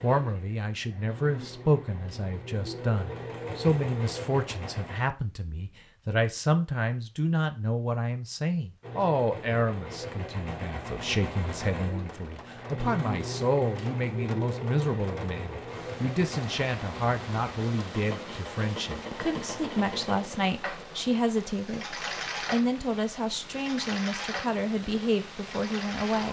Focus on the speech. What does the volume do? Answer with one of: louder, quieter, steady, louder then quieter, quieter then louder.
steady.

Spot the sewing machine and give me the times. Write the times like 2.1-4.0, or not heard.
0.0-5.0, 8.8-26.2.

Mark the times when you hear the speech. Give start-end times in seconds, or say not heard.
0.0-26.2.